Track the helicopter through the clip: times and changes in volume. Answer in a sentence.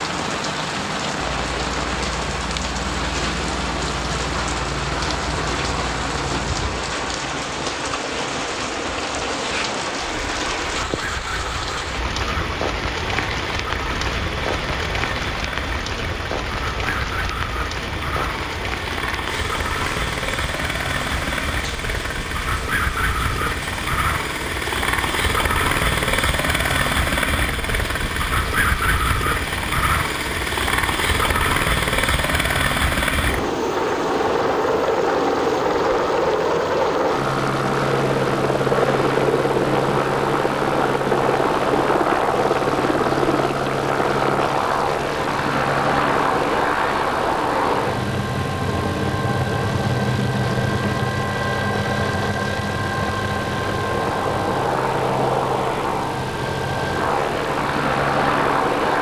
The helicopter can be heard from 0.0 to 58.9 s, getting louder.